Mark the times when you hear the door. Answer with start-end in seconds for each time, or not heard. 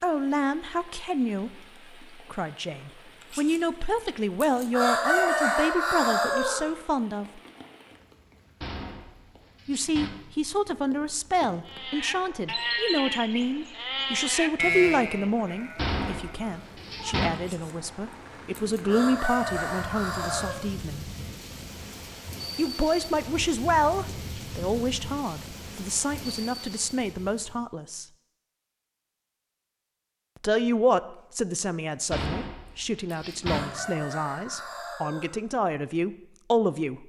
8.6-10.1, 15.8-17.3, 32.1-33.6.